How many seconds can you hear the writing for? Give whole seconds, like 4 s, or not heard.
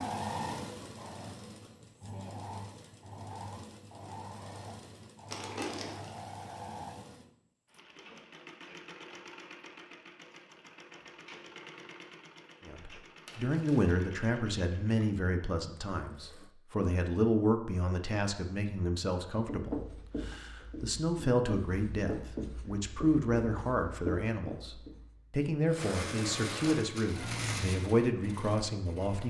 6 s.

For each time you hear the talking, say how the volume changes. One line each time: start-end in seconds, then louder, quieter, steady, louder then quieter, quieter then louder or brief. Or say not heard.
12.7-29.2 steady.